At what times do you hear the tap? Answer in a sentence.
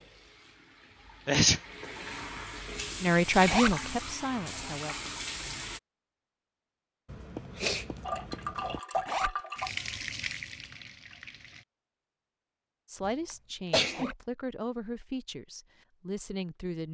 You can hear the tap from 0.0 to 5.8 s and from 8.0 to 11.7 s.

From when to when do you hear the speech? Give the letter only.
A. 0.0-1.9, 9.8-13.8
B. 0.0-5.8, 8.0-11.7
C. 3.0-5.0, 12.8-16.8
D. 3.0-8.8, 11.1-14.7
C.